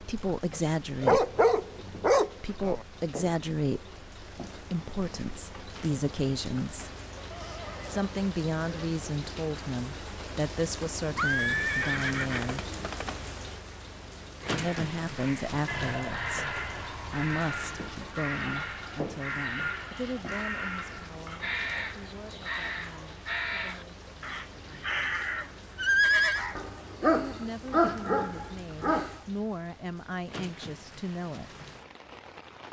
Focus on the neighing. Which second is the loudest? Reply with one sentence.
The volume of the neighing peaks at 26 seconds.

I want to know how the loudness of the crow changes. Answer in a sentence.
The volume of the crow stays about the same.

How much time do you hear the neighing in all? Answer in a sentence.
The neighing can be heard for 4 seconds in total.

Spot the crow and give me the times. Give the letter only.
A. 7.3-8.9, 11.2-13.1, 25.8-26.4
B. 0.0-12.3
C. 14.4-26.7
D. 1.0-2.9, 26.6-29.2
C.